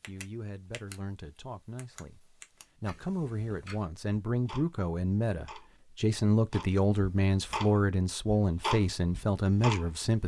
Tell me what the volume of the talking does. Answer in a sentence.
The volume of the talking goes up.